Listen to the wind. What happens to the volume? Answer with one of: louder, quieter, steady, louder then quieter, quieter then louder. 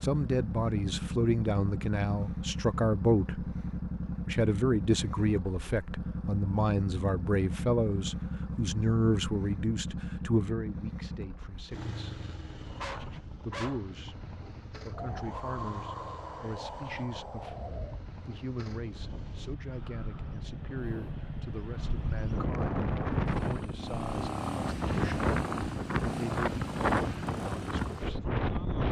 quieter then louder.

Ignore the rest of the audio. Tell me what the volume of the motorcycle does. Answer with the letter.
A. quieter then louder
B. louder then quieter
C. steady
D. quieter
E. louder
A.